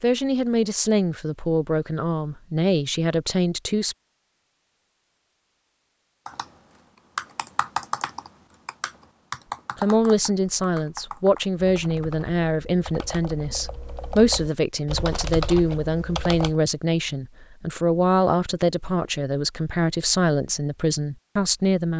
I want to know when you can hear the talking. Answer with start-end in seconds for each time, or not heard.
0.0-4.0, 9.8-21.9.